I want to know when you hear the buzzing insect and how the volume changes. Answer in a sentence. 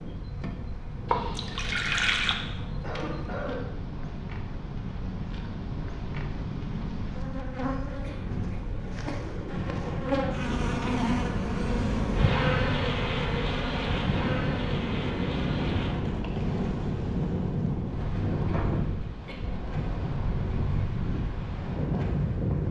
You can hear the buzzing insect from 0.0 to 22.6 s, getting louder then quieter.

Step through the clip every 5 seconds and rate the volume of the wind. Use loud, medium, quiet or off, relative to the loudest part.
medium, medium, loud, loud, loud.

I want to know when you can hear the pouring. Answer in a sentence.
You can hear the pouring from 1.1 to 2.4 s.